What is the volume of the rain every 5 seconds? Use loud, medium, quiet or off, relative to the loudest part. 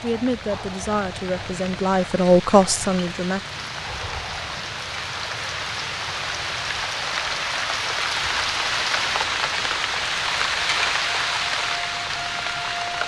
medium, loud, loud.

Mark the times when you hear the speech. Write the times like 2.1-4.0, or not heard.
0.0-3.4.